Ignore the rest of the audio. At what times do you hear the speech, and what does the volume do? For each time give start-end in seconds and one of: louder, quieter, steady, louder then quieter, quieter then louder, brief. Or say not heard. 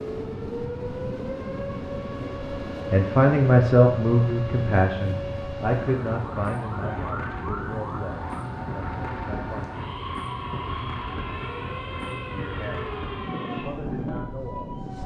2.9-9.7 quieter
12.3-14.8 brief.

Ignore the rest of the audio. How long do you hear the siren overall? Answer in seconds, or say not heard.
15 s.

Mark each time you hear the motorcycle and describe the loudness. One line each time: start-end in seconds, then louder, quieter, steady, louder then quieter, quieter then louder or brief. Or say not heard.
not heard.